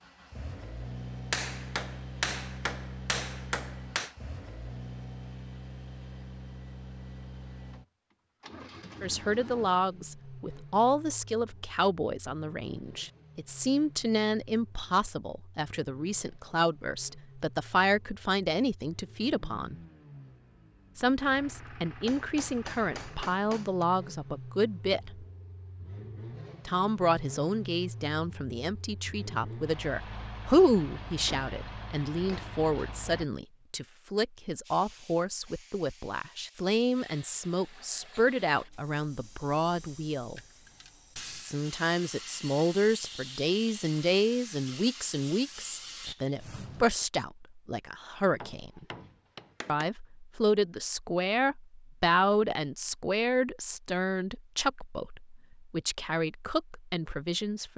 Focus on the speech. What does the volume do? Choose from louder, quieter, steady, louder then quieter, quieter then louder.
steady.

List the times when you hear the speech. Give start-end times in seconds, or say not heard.
9.0-19.8, 20.9-25.2, 26.6-40.4, 41.4-48.9, 49.6-57.7.